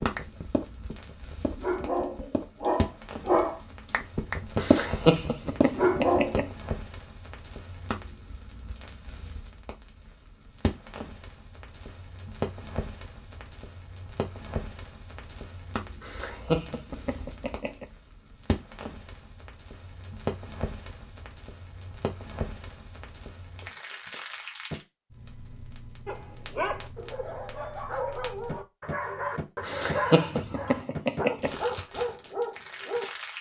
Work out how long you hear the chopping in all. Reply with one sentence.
The chopping can't be heard in this clip.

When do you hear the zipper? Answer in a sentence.
You can't hear the zipper here.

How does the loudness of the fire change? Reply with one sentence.
The loudness of the fire stays about the same.